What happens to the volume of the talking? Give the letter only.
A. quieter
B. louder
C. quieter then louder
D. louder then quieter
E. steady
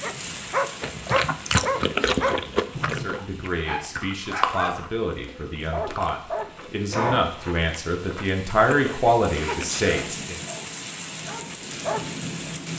B.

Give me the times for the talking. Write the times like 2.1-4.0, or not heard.
2.8-10.4.